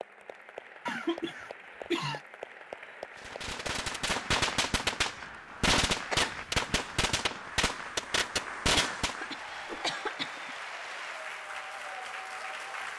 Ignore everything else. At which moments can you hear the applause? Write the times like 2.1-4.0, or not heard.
0.0-12.9.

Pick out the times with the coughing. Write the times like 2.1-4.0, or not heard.
0.8-2.2, 6.1-7.0, 8.8-10.6.